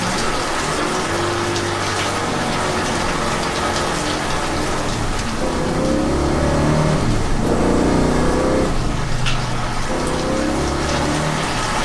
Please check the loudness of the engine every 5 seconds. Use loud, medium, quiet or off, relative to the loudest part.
medium, loud, loud.